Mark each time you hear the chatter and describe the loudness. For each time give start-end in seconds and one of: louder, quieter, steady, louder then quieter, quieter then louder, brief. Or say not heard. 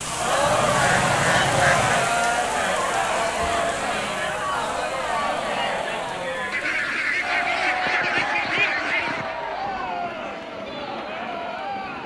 0.0-12.0 quieter.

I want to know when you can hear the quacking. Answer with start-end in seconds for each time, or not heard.
0.4-2.1, 6.5-9.3.